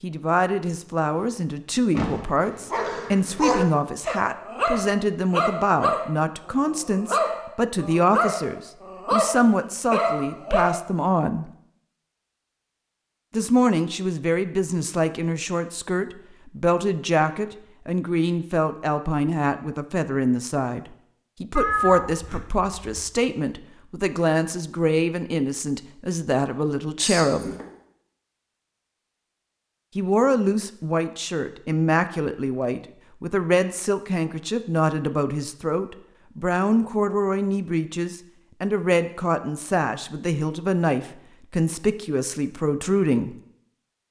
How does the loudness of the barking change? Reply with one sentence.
The loudness of the barking stays about the same.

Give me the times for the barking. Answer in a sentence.
The barking can be heard from 2.4 to 10.8 s.